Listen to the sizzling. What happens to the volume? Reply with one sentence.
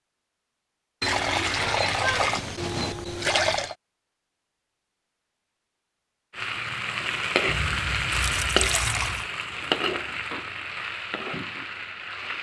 The volume of the sizzling goes down.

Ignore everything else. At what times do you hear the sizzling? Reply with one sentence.
The sizzling can be heard from 6.3 to 12.3 s.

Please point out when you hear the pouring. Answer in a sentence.
You can hear the pouring from 1.0 to 3.8 s and from 7.5 to 9.3 s.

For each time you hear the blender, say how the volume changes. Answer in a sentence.
You can't hear the blender here.